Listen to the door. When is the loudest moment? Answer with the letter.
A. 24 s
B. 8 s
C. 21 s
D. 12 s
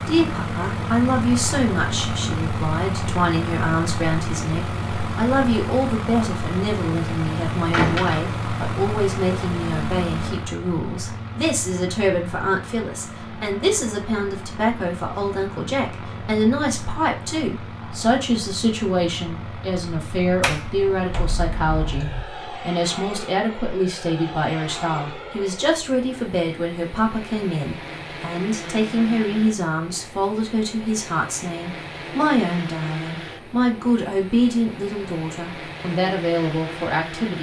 B.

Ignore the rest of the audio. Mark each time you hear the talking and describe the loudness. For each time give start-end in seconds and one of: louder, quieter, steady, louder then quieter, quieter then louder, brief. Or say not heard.
0.1-37.3 steady.